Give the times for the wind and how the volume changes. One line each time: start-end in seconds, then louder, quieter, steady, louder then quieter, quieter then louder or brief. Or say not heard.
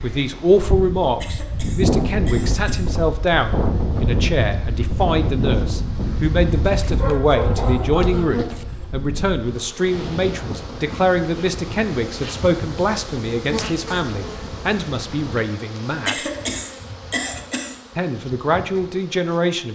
0.0-15.3 quieter.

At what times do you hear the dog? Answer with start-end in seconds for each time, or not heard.
6.8-8.7.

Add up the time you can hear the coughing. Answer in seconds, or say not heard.
5 s.